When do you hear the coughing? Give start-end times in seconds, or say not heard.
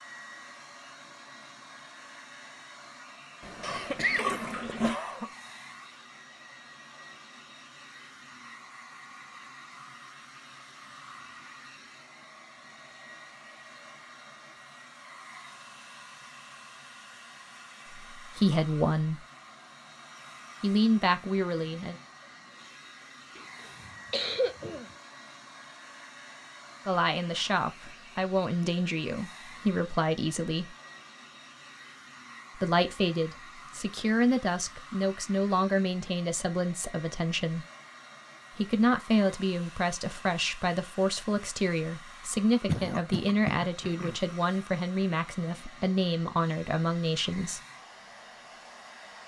3.6-5.3, 23.4-24.9, 42.6-44.1.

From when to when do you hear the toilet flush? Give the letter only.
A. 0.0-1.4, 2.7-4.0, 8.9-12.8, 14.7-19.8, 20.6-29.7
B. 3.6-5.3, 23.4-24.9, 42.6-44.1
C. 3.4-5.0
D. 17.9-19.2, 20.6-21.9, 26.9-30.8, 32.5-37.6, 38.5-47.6
C.